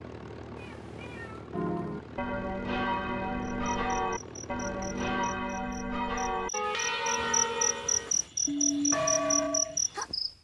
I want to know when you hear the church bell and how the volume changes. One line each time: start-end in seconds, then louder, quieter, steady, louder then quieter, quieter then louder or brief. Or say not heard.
1.5-9.8 steady.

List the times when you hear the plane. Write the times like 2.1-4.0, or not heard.
0.0-5.5.